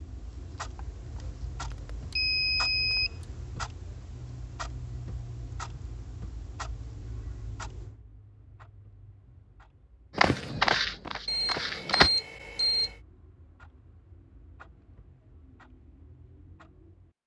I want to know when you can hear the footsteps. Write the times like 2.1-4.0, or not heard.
10.2-12.1.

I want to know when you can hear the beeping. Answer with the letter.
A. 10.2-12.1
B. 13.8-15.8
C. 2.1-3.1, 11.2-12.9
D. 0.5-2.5
C.